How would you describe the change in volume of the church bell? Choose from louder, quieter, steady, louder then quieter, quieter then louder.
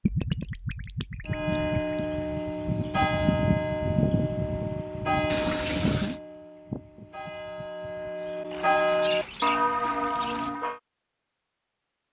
quieter then louder.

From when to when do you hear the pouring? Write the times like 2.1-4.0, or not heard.
0.0-1.9, 5.2-6.2, 8.5-10.5.